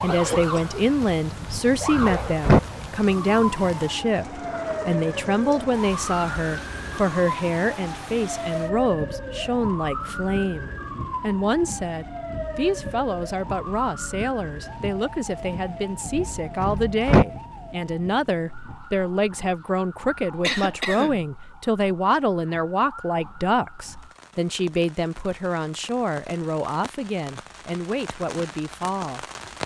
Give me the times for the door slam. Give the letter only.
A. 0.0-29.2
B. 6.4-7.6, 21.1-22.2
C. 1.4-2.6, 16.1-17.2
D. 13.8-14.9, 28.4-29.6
C.